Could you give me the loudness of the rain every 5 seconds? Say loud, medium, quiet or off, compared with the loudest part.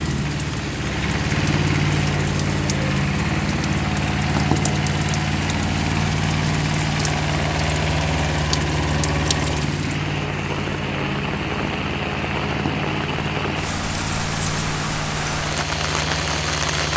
medium, medium, loud, loud.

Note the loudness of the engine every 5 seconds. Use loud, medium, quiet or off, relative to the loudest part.
loud, loud, medium, medium.